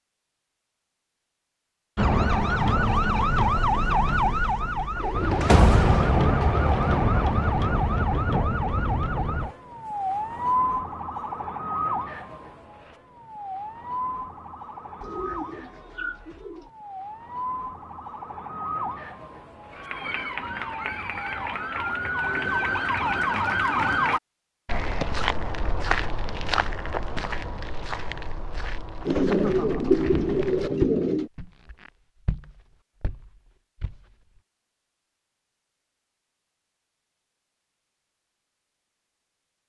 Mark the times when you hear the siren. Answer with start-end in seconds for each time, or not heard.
1.9-24.2.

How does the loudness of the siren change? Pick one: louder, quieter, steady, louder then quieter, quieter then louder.
quieter then louder.